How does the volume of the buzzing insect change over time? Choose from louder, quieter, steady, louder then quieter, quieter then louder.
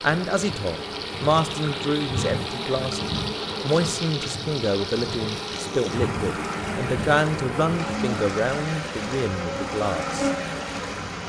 steady.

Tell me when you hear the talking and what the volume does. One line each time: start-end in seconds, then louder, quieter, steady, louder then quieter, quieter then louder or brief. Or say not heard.
0.0-10.3 steady.